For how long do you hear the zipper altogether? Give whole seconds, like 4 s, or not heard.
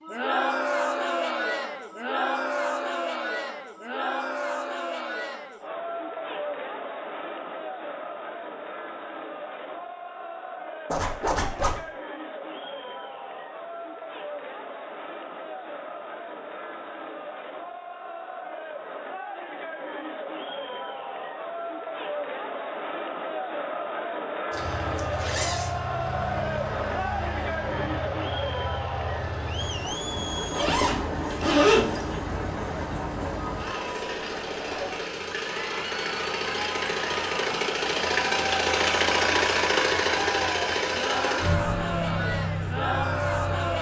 4 s.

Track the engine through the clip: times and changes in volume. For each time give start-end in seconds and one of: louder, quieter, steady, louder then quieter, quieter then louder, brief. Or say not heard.
24.6-43.7 louder.